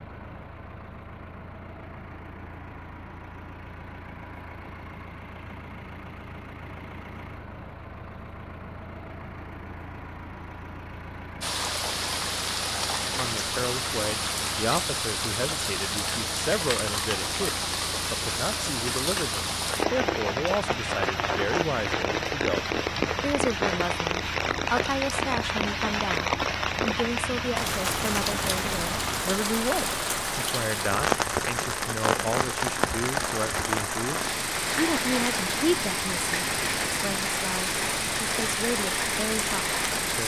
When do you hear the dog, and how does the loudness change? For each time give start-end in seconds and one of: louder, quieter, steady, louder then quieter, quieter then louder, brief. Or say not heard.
not heard.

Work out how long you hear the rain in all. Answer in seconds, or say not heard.
29 s.